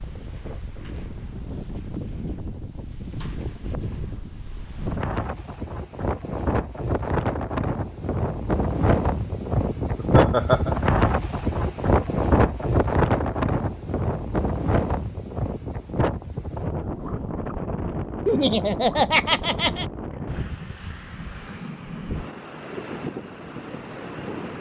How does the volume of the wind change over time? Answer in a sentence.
The volume of the wind goes up, then down.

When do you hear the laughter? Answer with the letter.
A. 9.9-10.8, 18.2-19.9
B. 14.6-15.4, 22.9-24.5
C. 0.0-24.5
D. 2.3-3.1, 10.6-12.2
A.